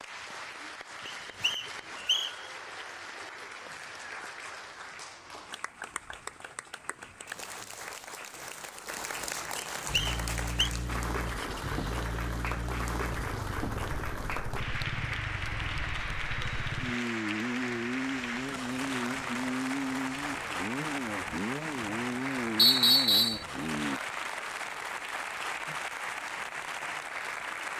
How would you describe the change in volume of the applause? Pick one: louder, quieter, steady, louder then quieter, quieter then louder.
louder.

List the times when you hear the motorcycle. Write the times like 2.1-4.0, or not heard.
9.8-24.0.